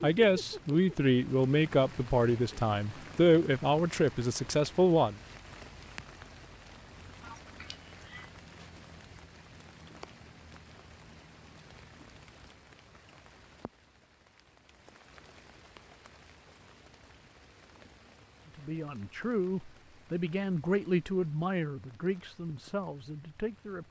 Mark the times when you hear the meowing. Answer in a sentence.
You can hear the meowing from 7.2 to 8.3 s.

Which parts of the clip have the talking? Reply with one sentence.
The talking can be heard from 0.0 to 5.2 s and from 18.4 to 23.8 s.